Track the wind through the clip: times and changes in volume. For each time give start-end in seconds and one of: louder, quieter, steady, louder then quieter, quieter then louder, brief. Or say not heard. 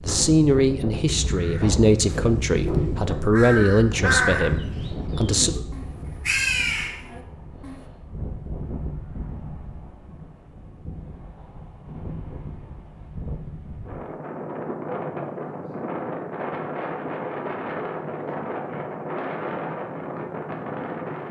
0.0-21.2 quieter then louder.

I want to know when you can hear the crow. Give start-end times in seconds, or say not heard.
1.1-7.8.